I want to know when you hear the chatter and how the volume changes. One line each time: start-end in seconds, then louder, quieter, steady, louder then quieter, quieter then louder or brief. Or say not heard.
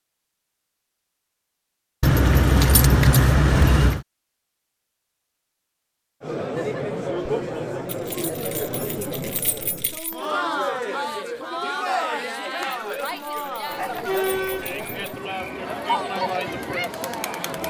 6.2-17.6 steady.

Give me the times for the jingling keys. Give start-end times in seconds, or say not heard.
2.0-4.0, 7.9-10.2, 12.7-15.2.